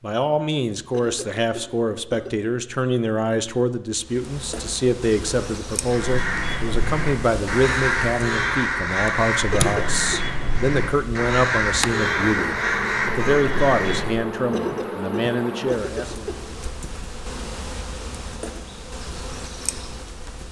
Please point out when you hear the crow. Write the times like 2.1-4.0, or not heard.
5.8-14.2.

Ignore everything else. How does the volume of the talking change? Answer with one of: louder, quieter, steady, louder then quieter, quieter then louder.
steady.